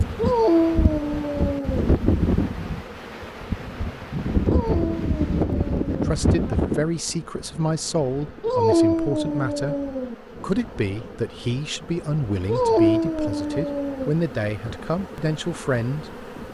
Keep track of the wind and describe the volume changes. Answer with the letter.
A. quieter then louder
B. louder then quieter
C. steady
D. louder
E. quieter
E.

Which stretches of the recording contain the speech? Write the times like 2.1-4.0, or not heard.
6.0-16.2.